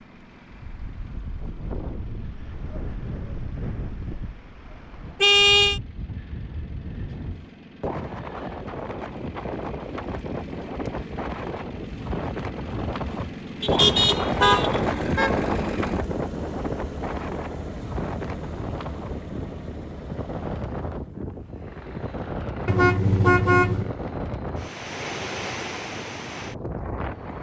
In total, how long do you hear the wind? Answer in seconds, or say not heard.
27 s.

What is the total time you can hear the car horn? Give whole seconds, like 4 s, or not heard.
4 s.